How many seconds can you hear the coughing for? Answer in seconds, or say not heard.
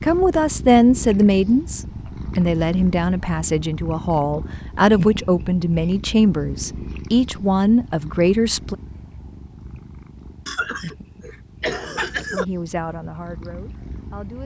2 s.